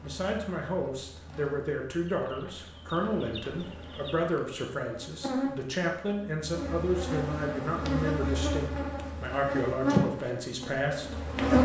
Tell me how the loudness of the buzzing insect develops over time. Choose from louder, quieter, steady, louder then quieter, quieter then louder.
louder.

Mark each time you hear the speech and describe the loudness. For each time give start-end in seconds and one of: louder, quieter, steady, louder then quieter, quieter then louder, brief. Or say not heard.
0.0-11.6 steady.